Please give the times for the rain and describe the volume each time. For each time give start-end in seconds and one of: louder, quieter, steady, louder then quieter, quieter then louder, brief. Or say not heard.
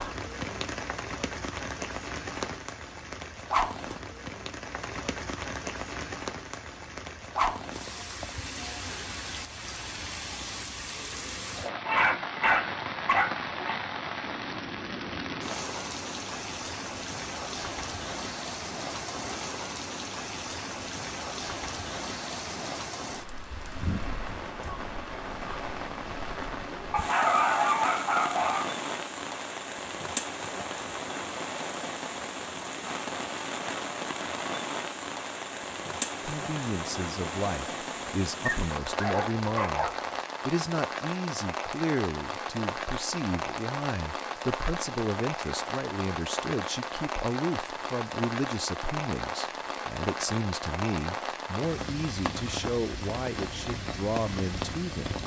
0.0-55.2 steady.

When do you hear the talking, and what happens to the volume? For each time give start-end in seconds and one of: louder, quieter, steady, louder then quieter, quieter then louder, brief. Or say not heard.
36.2-55.1 steady.